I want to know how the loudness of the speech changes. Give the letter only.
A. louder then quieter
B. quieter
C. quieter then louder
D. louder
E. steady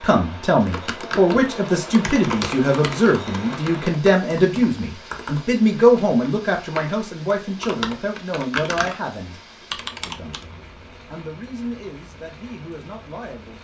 B.